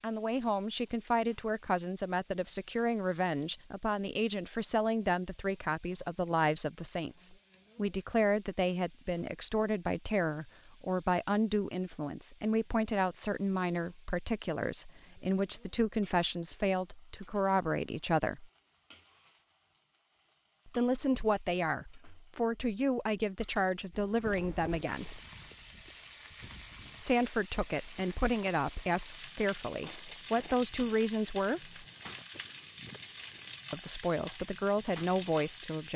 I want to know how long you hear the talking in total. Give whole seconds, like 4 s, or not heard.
30 s.